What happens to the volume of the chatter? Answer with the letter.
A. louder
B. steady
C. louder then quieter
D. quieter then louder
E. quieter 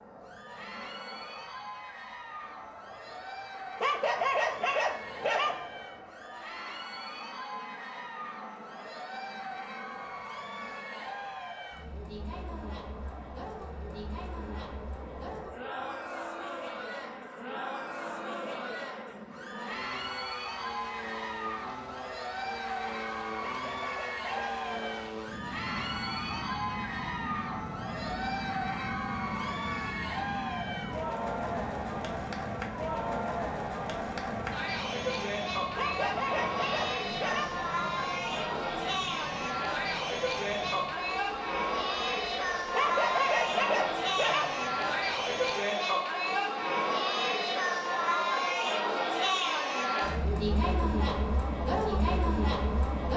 A.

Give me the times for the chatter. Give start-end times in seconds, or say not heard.
0.1-53.1.